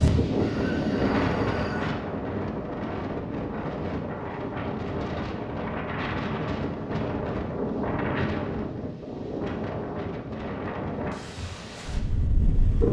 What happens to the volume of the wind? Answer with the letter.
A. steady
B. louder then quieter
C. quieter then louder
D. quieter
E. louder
D.